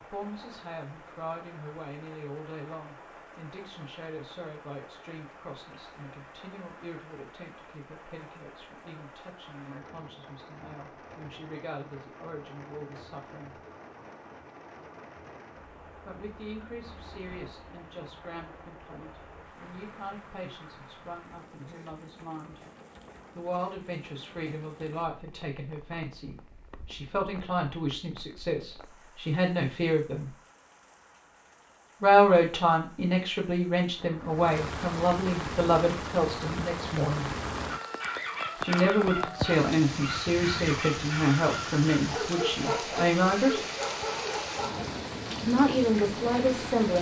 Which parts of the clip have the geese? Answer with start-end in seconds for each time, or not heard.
not heard.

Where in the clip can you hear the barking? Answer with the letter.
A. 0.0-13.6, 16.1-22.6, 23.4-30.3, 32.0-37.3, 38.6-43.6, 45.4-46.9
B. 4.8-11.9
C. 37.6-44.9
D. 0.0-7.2
C.